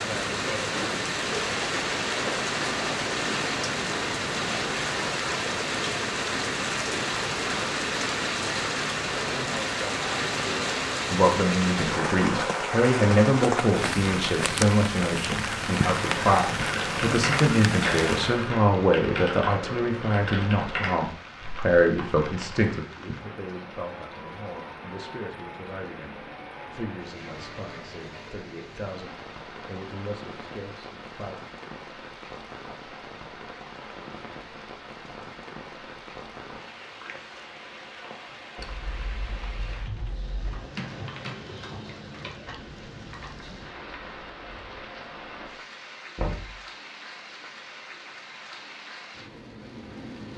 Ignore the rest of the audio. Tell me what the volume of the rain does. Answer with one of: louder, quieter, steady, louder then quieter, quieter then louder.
quieter.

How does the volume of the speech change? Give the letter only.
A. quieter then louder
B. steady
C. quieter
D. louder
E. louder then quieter
C.